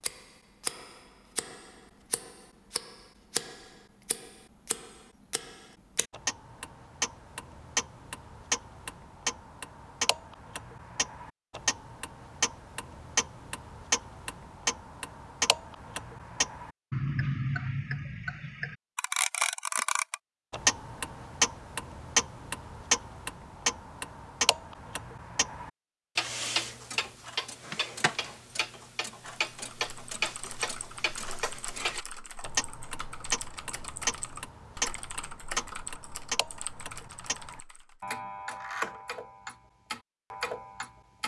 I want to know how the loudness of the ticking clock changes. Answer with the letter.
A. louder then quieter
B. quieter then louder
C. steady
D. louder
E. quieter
A.